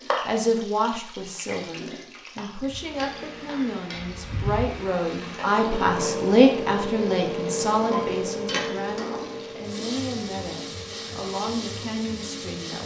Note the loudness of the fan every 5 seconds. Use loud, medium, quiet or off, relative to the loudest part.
medium, loud, medium.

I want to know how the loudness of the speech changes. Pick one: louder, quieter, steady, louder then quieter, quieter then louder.
louder then quieter.